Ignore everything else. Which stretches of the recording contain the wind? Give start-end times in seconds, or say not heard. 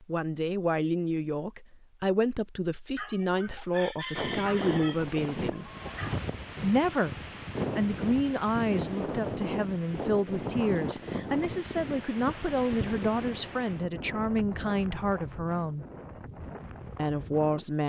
4.2-17.8.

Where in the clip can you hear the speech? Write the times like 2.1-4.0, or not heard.
0.0-5.7, 6.6-7.2, 7.8-15.8, 16.9-17.8.